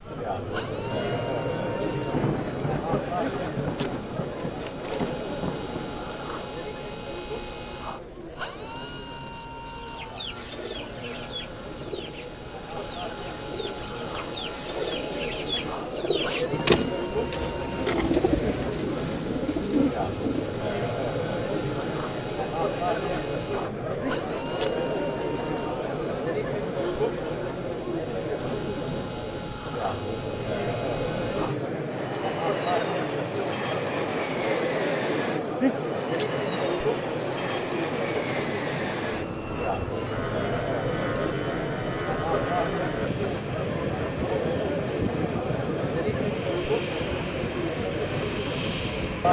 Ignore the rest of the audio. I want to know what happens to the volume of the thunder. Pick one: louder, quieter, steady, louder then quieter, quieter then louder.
quieter then louder.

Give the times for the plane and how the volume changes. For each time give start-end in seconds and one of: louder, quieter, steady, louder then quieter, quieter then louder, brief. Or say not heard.
0.0-49.2 louder.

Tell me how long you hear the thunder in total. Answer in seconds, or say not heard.
4 s.